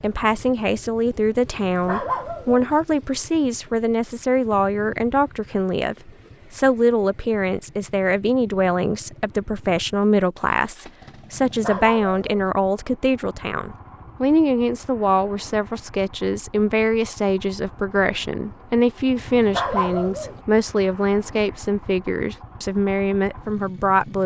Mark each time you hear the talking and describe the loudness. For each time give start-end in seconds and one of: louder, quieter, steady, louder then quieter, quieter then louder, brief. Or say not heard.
0.0-24.2 steady.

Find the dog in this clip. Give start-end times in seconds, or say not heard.
1.6-2.8, 11.4-12.5, 19.2-20.4.